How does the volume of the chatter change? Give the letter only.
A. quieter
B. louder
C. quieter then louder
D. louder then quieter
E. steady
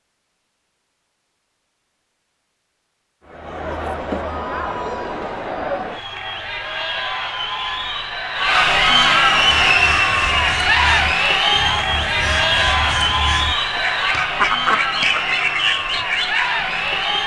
D.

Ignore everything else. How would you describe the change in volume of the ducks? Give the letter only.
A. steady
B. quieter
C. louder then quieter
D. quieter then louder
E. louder
E.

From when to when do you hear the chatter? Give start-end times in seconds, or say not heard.
3.2-17.2.